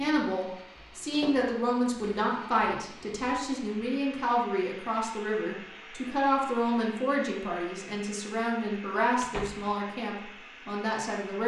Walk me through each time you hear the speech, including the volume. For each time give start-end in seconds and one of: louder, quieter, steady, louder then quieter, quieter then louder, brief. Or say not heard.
0.0-11.4 steady.